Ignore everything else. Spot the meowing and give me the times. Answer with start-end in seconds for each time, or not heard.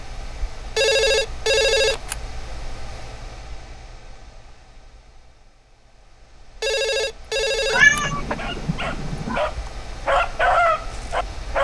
7.7-9.4.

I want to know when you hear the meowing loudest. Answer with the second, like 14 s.
8 s.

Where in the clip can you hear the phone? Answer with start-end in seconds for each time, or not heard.
0.8-2.1, 6.6-8.0.